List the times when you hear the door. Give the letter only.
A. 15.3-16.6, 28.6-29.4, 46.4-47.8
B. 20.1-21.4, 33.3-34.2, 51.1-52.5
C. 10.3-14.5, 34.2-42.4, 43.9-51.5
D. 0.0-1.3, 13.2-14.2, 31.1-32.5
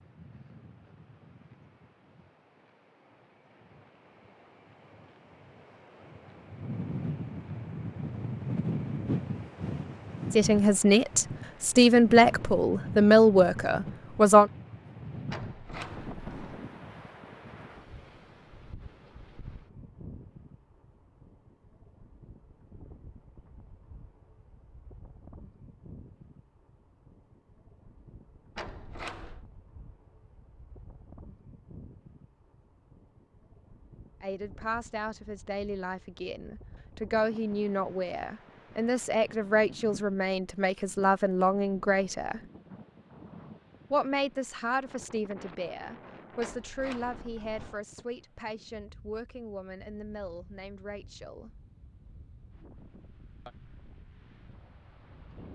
A.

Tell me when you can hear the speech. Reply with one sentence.
The speech can be heard from 10.3 to 14.5 s, from 34.2 to 42.4 s and from 43.9 to 51.5 s.